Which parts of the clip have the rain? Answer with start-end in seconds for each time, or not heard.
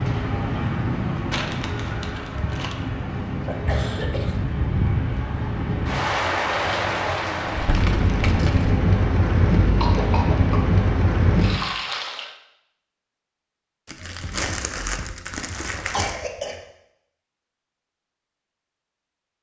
0.0-12.3.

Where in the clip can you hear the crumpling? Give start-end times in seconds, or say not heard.
1.3-2.8, 7.5-8.8, 13.8-16.1.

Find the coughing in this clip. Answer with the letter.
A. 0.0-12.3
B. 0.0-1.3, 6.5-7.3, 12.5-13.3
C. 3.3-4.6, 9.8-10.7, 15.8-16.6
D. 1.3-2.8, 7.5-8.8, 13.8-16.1
C.